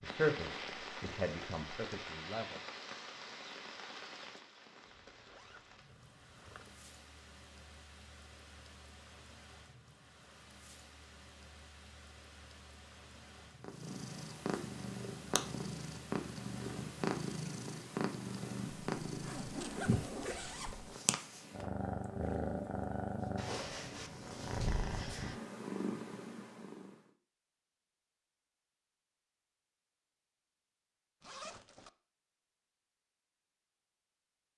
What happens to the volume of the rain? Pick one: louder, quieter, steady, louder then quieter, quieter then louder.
quieter.